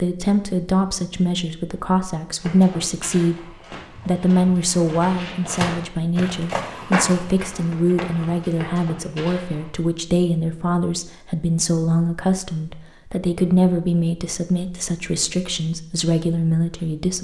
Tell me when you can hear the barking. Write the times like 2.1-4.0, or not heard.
not heard.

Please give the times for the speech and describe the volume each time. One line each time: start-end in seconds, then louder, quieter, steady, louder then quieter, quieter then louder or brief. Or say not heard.
0.0-17.2 steady.